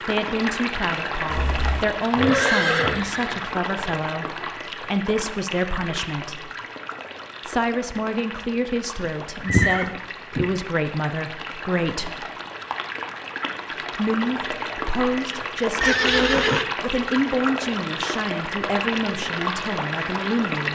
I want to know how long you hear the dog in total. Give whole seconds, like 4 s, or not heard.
not heard.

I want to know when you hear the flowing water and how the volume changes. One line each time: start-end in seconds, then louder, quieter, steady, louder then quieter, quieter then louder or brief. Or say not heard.
0.0-20.7 quieter then louder.